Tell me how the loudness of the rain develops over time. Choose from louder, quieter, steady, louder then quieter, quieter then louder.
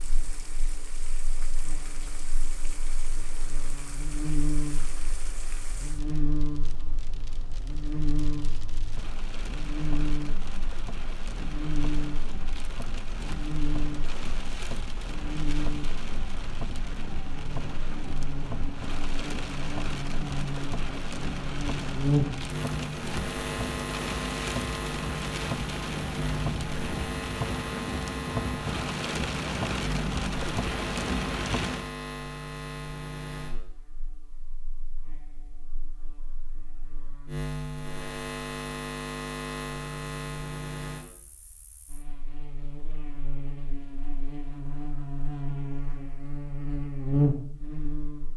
louder.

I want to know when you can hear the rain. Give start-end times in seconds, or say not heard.
0.0-31.9.